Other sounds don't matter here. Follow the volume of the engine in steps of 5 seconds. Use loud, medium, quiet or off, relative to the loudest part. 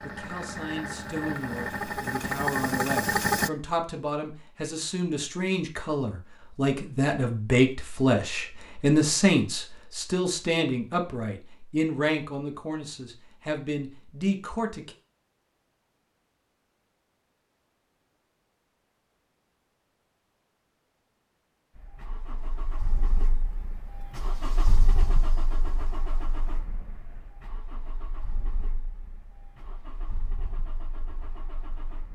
loud, off, off, off, quiet, quiet, quiet.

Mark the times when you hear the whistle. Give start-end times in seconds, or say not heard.
not heard.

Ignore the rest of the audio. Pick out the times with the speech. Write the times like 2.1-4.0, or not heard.
0.0-14.9.